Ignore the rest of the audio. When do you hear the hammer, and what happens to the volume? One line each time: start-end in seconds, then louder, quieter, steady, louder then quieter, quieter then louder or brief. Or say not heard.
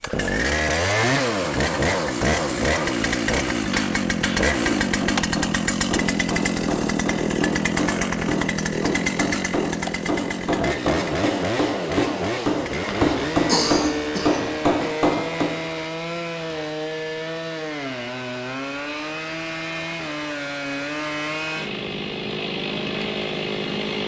3.6-15.6 louder.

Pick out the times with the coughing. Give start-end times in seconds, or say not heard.
12.7-14.5.